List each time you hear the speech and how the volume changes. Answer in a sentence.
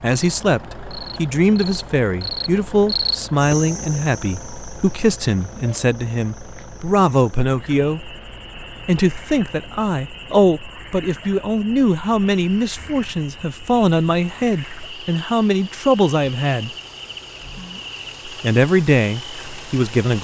The speech can be heard from 0.0 to 8.1 s, at a steady volume; from 8.8 to 16.7 s, at a steady volume; and briefly from 18.2 to 20.1 s.